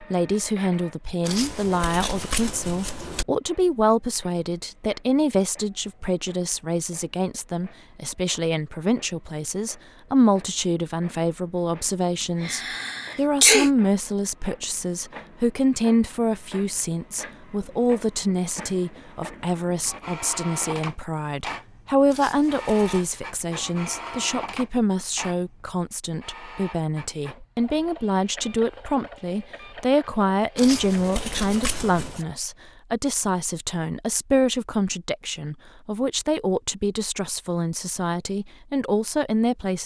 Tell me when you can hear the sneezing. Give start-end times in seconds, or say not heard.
12.2-13.7.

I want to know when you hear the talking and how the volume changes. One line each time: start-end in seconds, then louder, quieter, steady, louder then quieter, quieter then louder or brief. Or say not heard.
0.0-39.8 steady.